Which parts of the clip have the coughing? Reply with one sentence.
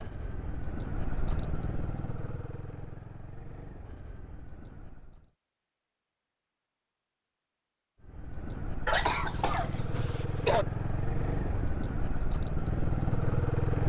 You can hear the coughing from 8.8 to 10.7 s.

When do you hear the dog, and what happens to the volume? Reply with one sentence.
You can't hear the dog here.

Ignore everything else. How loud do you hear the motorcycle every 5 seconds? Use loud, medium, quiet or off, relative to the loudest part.
medium, medium, loud.